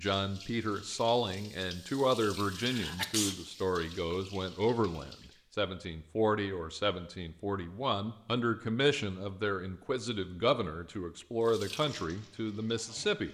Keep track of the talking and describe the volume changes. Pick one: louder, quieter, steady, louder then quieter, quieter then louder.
steady.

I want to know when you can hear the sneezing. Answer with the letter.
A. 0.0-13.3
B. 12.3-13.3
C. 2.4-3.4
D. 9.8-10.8
C.